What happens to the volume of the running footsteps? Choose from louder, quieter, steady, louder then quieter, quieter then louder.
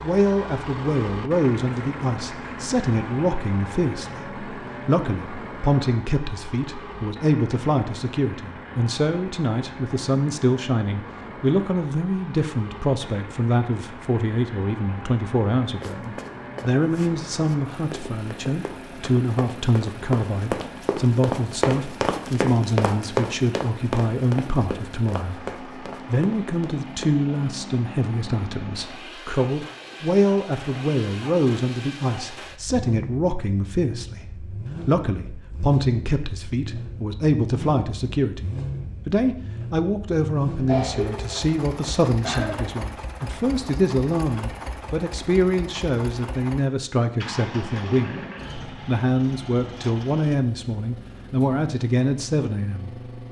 louder then quieter.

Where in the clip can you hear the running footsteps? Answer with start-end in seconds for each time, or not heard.
15.8-27.1.